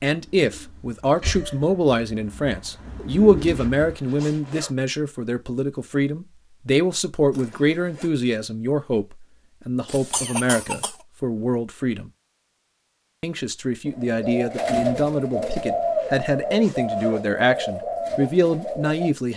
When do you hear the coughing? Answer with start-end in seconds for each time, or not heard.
1.2-1.6, 9.8-10.9.